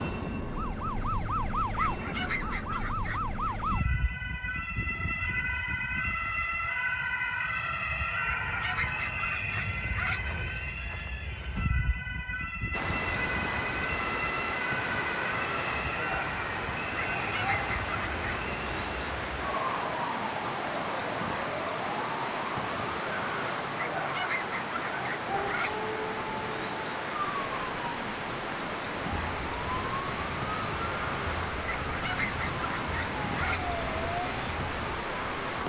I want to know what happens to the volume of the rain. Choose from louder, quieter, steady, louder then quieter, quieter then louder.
steady.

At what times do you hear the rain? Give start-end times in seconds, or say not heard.
12.7-35.6.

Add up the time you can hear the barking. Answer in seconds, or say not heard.
9 s.